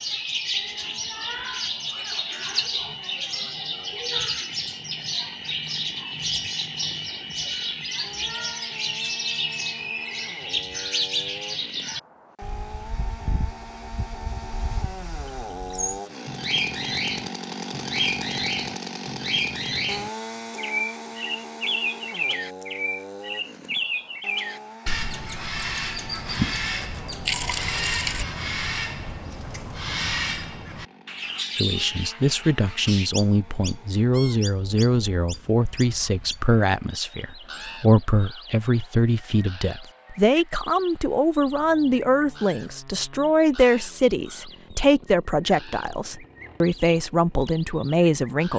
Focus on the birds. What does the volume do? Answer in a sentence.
The loudness of the birds goes down.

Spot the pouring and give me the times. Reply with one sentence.
The pouring can be heard from 26.2 to 28.2 s.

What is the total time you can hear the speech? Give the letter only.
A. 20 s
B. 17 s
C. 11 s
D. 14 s
B.